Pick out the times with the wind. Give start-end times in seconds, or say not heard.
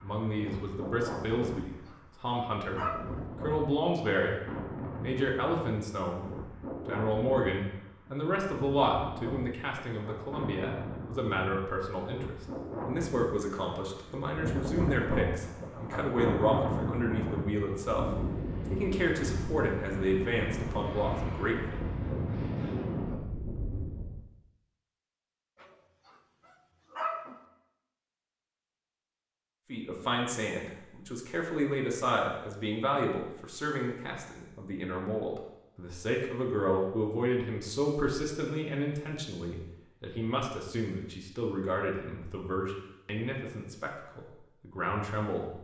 0.0-24.2.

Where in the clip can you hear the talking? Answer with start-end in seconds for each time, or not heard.
0.0-21.8, 29.7-45.5.